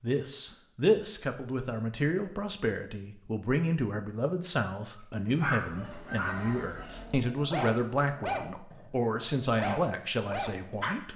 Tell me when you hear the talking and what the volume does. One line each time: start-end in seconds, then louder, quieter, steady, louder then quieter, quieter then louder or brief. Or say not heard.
0.0-11.1 steady.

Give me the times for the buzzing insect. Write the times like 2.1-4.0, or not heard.
not heard.